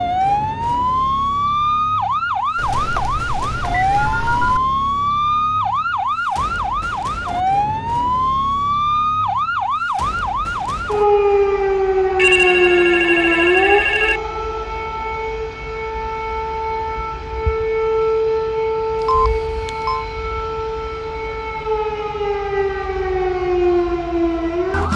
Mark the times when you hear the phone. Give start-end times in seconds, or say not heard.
2.5-4.6, 12.2-14.2, 19.0-20.1.